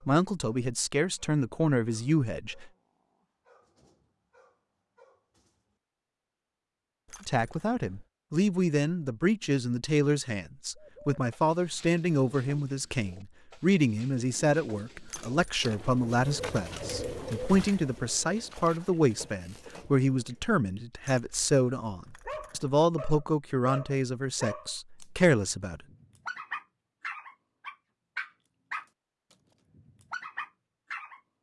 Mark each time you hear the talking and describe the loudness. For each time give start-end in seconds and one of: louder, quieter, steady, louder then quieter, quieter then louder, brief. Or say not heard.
0.1-2.6 brief
7.2-25.8 steady.